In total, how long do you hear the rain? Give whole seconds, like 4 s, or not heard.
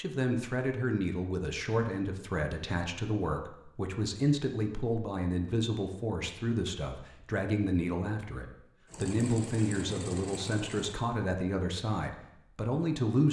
not heard.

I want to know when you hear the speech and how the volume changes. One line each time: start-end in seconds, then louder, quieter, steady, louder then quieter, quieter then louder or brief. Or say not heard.
0.0-13.2 steady.